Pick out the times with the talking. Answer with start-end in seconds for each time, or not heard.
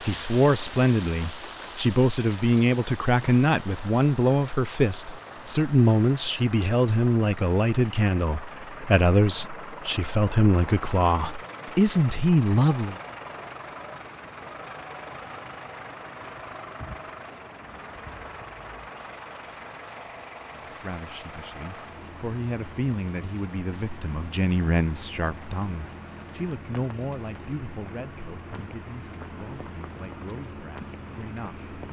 0.1-12.9, 20.6-31.6.